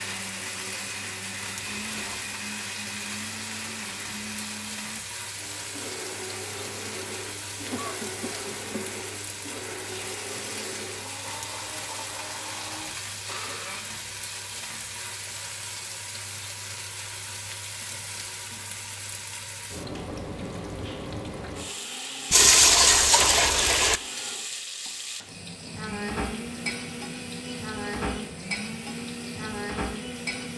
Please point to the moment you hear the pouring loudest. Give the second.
23 s.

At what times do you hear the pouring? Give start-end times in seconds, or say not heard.
1.6-2.2, 22.3-24.0.